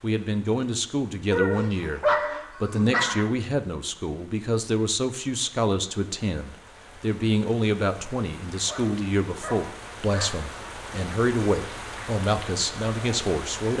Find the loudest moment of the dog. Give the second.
2 s.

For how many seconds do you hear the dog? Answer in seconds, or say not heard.
4 s.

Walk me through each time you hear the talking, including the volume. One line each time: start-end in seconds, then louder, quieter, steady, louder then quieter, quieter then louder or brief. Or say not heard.
0.0-13.7 steady.